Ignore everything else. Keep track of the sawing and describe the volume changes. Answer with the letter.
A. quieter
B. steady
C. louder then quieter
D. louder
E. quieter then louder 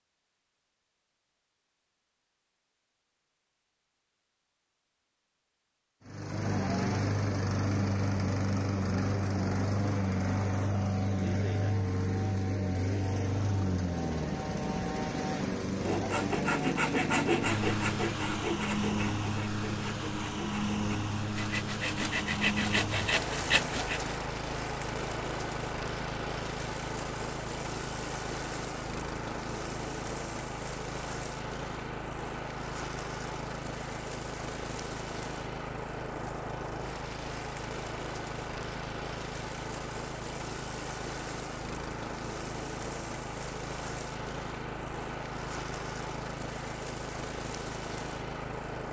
E.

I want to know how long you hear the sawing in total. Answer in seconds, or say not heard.
8 s.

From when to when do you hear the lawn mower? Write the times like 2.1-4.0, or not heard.
6.0-48.8.